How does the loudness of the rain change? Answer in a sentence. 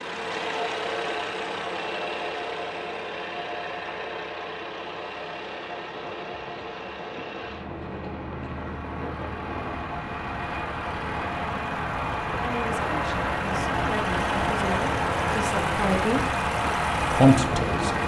The volume of the rain goes up.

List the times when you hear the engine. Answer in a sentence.
The engine can be heard from 0.0 to 18.0 s.